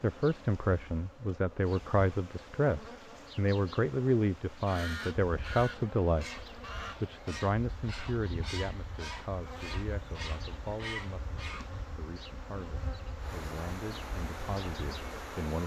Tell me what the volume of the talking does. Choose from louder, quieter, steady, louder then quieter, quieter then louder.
quieter.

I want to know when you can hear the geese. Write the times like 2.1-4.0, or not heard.
4.5-11.8.